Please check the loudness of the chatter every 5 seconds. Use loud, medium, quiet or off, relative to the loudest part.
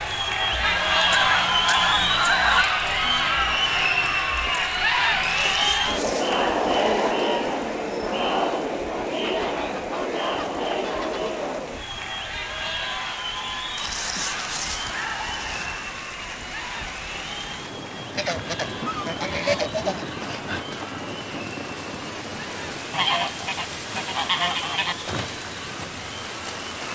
loud, loud, medium, quiet, quiet, quiet.